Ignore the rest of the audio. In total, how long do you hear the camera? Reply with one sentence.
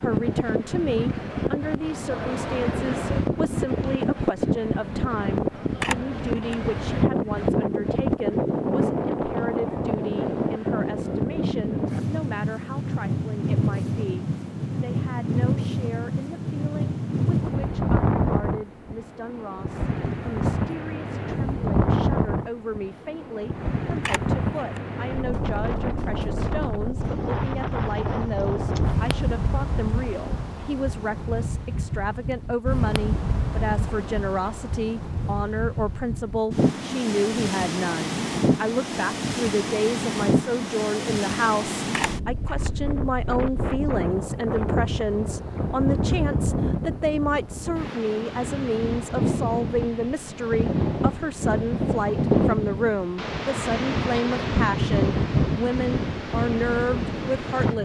You can hear the camera for 2 seconds altogether.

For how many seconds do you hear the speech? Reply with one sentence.
The speech can be heard for 58 seconds in total.